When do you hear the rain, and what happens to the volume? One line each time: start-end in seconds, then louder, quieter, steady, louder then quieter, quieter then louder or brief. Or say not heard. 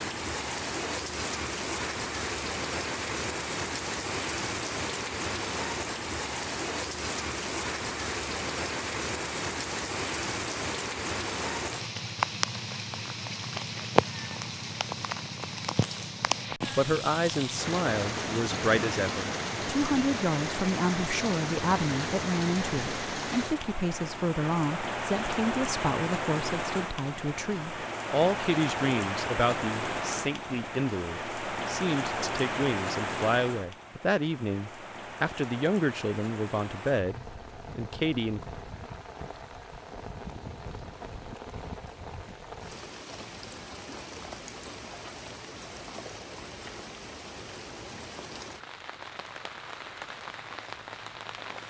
0.0-51.6 quieter.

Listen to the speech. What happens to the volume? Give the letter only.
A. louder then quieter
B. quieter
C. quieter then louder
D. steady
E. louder
D.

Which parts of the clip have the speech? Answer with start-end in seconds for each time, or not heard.
16.8-38.5.